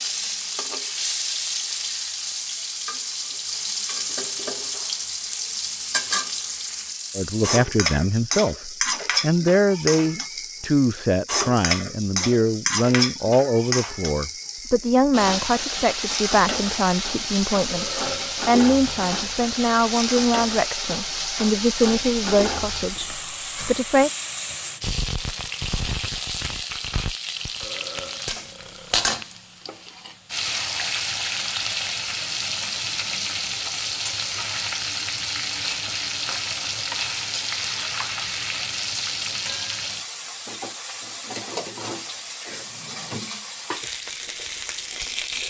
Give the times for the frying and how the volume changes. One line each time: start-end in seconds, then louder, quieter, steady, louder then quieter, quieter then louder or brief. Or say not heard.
0.0-45.4 steady.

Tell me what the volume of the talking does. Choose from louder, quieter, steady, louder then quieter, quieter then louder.
steady.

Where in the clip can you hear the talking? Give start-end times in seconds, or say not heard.
7.2-24.1.